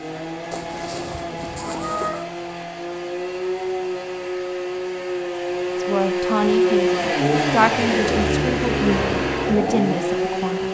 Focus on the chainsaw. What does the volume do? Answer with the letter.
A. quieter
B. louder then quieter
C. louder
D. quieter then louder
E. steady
C.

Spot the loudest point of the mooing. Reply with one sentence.
The loudest moment of the mooing is at 2 seconds.